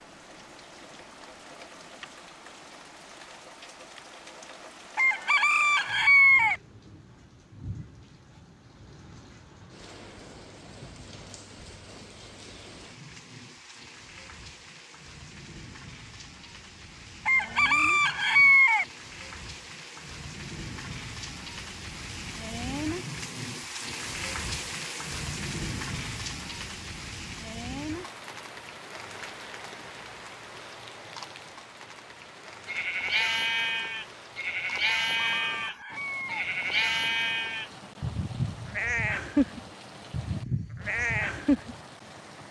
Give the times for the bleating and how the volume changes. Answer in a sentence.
You can hear the bleating from 32.6 to 41.8 s, at a steady volume.